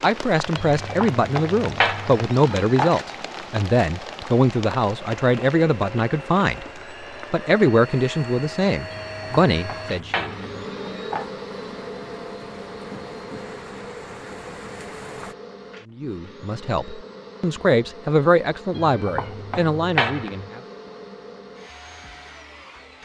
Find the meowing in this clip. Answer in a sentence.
You can hear the meowing from 0.6 to 3.0 s, from 8.9 to 11.3 s and from 18.7 to 20.5 s.